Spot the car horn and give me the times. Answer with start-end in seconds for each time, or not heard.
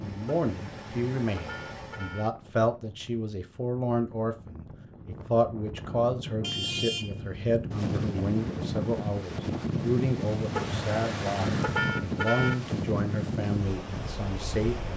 0.4-2.3, 6.4-7.2, 10.6-12.6.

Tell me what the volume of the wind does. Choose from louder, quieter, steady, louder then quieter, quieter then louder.
louder.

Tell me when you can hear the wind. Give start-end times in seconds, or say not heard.
0.0-14.9.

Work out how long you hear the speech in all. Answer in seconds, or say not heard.
15 s.